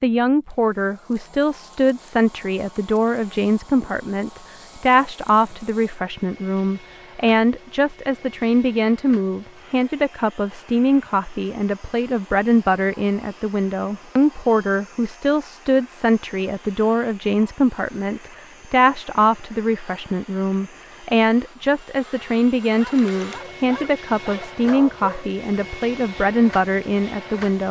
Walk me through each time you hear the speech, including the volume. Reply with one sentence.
You can hear the speech from 0.0 to 27.6 s, at a steady volume.